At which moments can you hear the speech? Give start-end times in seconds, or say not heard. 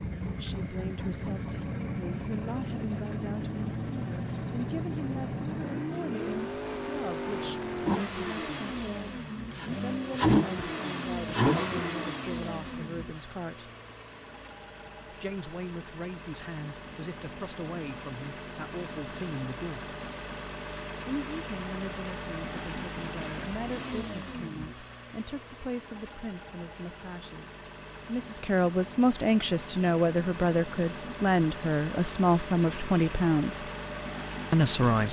0.0-13.7, 15.1-19.9, 21.1-33.7, 34.5-35.0.